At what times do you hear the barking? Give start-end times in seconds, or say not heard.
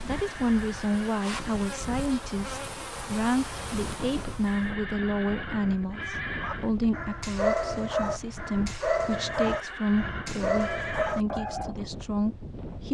6.4-11.8.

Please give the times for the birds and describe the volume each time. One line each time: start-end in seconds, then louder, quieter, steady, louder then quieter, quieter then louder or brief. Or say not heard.
not heard.